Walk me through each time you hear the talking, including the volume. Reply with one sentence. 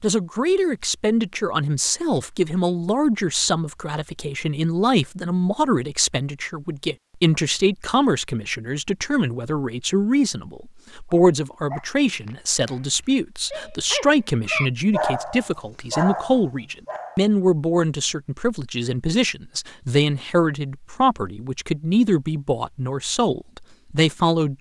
You can hear the talking from 0.0 to 24.5 s, at a steady volume.